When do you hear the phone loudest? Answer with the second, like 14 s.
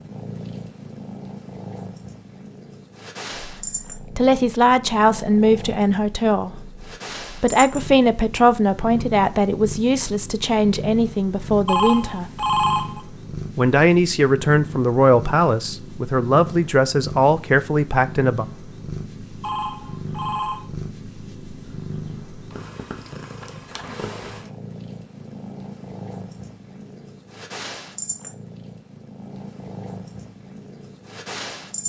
13 s.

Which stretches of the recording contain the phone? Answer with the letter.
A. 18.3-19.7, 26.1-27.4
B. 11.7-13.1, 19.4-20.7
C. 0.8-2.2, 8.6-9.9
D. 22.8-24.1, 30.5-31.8
B.